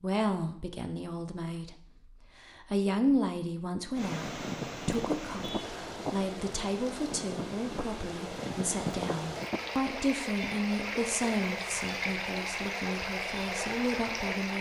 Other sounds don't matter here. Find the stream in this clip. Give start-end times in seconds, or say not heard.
3.9-14.5.